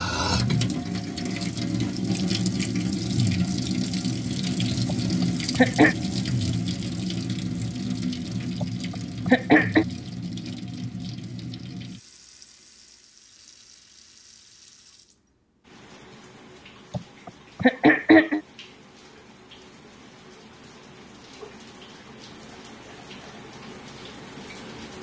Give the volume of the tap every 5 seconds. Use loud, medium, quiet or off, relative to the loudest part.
loud, loud, quiet, quiet, quiet.